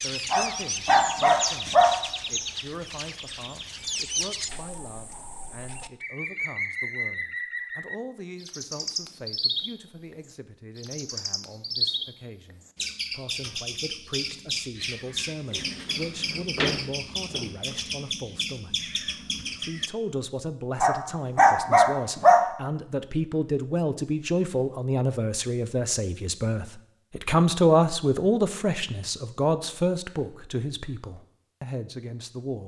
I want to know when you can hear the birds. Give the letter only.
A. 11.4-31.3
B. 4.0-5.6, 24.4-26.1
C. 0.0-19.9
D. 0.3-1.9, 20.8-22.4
C.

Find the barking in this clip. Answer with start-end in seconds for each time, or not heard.
0.3-1.9, 20.8-22.4.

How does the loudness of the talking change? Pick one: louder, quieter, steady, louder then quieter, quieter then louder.
louder.